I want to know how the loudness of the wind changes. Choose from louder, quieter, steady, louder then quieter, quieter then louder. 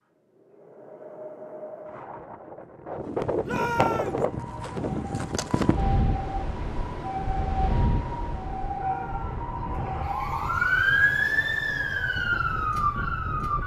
louder then quieter.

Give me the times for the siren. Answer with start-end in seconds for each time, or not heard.
4.1-13.6.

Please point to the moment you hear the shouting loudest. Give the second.
4 s.